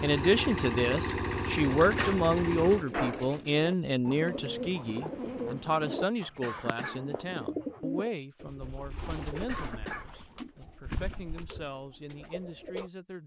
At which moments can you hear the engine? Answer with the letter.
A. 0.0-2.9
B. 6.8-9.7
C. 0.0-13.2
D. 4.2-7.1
A.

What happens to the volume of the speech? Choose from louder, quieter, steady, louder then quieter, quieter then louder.
quieter.